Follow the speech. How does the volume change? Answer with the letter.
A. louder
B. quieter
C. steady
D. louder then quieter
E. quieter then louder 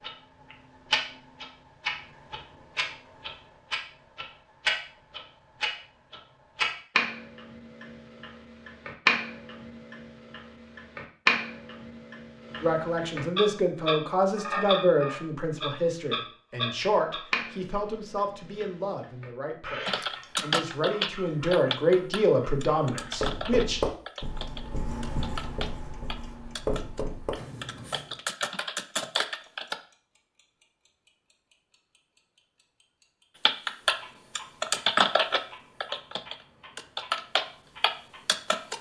E.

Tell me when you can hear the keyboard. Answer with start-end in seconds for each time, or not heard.
19.9-29.8, 33.5-38.7.